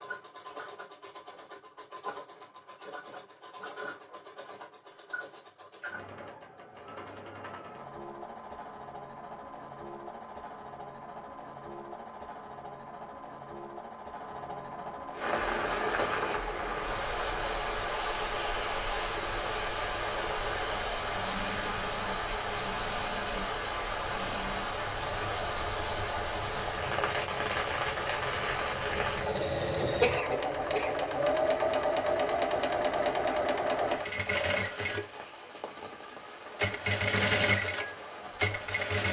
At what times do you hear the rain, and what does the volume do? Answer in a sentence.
The rain can be heard from 15.2 to 39.0 s, getting quieter.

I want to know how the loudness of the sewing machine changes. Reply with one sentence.
The loudness of the sewing machine goes up.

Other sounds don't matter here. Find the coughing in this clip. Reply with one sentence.
The coughing can be heard from 30.0 to 30.9 s.